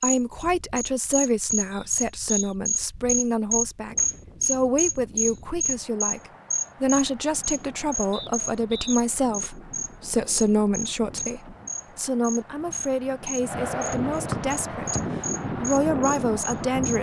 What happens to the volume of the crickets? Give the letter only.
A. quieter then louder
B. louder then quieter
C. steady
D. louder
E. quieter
E.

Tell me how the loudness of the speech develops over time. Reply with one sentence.
The loudness of the speech stays about the same.